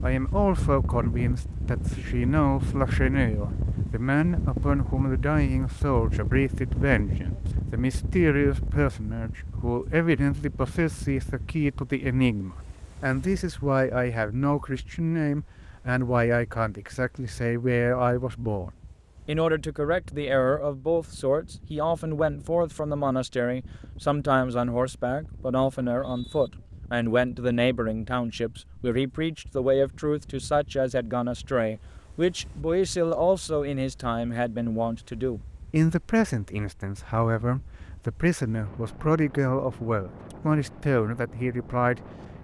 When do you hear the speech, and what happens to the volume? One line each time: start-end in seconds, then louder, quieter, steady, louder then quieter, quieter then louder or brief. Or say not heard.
0.0-42.0 steady.